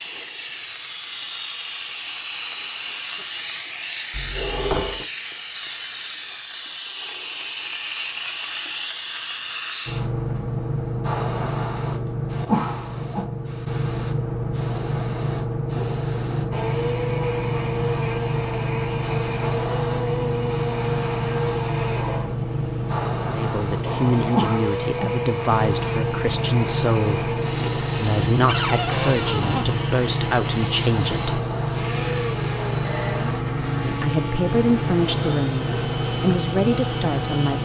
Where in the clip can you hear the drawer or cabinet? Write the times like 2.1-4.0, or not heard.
4.1-5.0, 28.4-29.6.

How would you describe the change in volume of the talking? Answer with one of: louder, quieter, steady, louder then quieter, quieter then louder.
steady.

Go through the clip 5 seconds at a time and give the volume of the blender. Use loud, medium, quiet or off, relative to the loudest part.
off, off, off, loud, loud, loud, loud, loud.